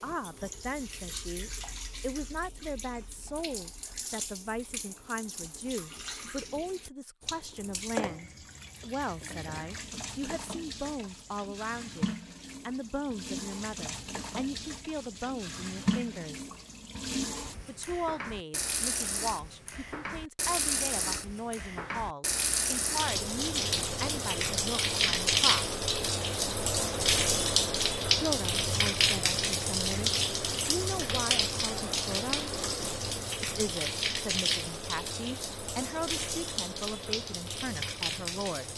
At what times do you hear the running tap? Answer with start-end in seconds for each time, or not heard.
0.0-38.7.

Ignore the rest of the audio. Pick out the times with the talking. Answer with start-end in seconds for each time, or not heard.
0.0-16.4, 17.6-25.6, 28.1-32.5, 33.4-38.7.